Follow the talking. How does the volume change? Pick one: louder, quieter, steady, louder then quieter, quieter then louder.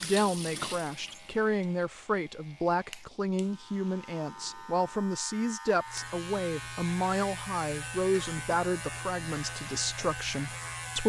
steady.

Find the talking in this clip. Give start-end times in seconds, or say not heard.
0.0-11.0.